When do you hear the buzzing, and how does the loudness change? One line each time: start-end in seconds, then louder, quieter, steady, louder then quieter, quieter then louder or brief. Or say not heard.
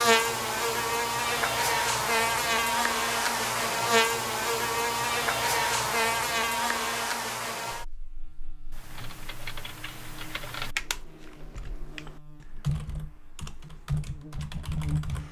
0.0-15.1 quieter.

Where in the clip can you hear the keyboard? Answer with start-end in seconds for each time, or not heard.
8.7-15.2.